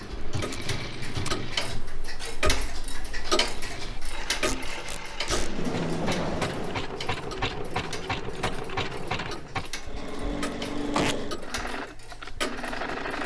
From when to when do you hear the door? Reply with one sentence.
The door can be heard from 0.3 to 1.4 s, from 5.2 to 6.8 s and from 10.4 to 11.2 s.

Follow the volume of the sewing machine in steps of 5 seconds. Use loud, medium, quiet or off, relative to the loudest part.
medium, loud, loud.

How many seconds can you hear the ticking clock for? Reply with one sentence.
The ticking clock can be heard for 13 seconds in total.